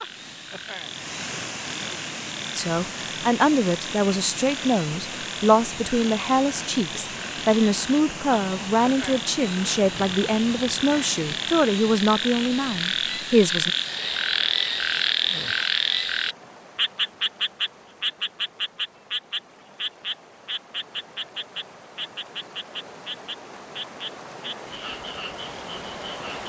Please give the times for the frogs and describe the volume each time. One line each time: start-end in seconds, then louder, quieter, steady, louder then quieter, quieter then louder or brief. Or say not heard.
0.0-26.4 louder then quieter.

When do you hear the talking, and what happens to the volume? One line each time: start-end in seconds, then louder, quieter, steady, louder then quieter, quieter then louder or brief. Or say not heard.
2.5-13.8 steady.